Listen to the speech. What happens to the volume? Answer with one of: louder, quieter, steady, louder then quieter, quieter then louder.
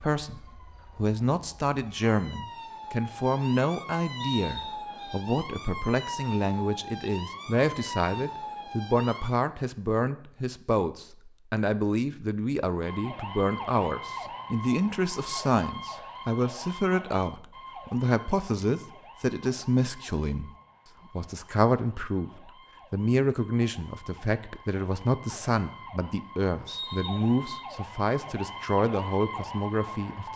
steady.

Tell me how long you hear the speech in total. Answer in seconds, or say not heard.
30 s.